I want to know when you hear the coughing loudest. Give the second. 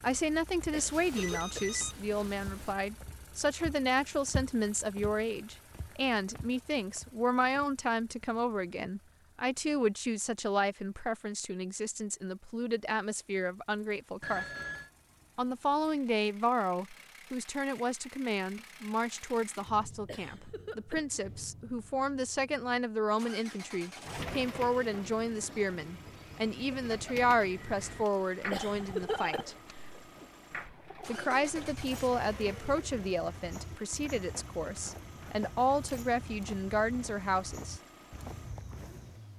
29 s.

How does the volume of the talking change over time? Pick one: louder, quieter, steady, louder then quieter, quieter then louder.
steady.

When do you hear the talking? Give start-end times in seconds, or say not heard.
0.0-14.4, 15.3-29.6, 31.1-37.8.